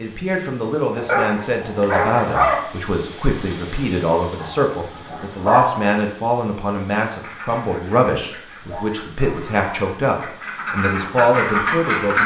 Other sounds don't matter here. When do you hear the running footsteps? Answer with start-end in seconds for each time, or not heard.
not heard.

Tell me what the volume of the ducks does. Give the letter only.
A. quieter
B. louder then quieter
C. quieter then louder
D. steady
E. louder
E.